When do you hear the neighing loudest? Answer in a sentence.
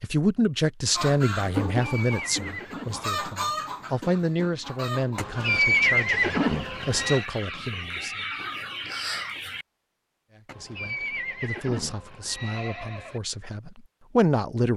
The volume of the neighing peaks at 6 seconds.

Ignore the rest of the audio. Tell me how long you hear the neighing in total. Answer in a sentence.
The neighing can be heard for 6 seconds in total.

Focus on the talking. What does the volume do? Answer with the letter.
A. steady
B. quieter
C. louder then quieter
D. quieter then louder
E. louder
D.